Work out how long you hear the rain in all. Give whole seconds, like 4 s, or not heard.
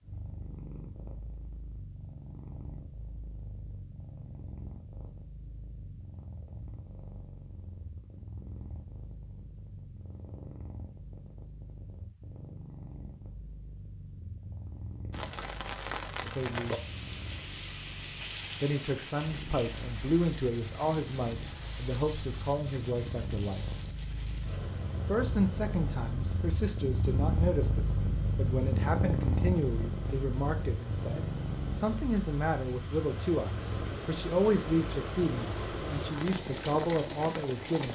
23 s.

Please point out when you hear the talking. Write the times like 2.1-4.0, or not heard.
16.2-16.8, 18.6-23.6, 25.1-37.9.